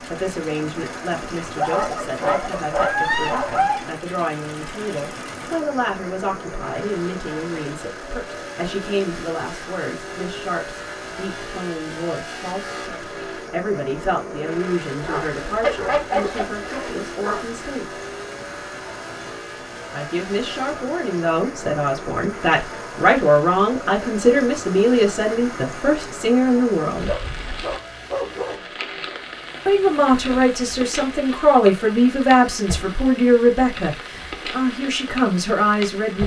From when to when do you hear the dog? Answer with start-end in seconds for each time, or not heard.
1.6-3.8, 15.0-17.6, 27.1-28.6.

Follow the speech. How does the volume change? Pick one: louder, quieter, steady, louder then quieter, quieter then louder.
louder.